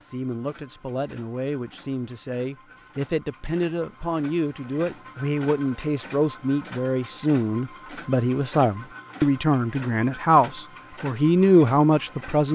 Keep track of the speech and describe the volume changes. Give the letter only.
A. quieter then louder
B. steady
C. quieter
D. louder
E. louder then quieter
D.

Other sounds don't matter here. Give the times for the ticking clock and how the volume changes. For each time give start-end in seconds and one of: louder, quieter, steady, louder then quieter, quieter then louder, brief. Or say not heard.
not heard.